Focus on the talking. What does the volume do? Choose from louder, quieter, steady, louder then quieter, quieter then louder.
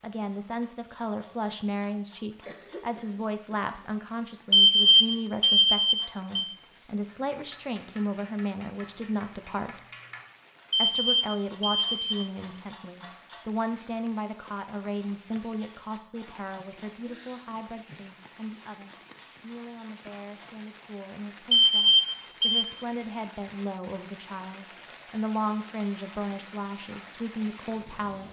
quieter then louder.